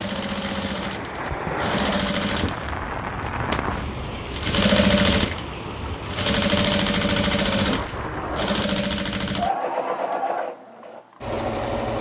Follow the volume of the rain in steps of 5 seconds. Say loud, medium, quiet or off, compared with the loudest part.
loud, loud, off.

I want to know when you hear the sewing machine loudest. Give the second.
5 s.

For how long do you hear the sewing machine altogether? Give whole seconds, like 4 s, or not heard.
12 s.